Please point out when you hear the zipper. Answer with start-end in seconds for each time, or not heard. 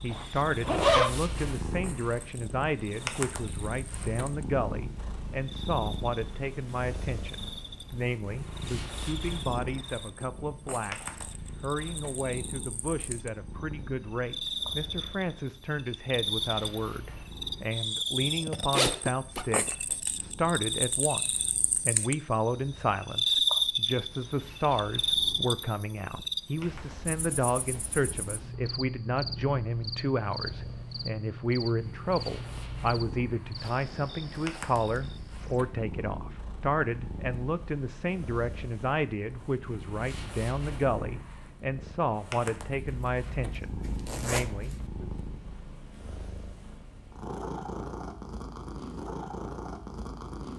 0.1-1.1, 18.7-19.4, 42.9-44.9.